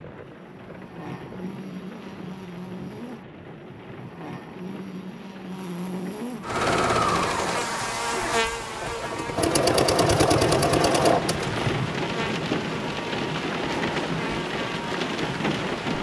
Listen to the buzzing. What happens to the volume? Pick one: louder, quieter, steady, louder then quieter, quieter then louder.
louder then quieter.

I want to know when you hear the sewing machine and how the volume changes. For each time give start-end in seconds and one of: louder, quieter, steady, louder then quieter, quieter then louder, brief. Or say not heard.
6.4-11.8 quieter then louder.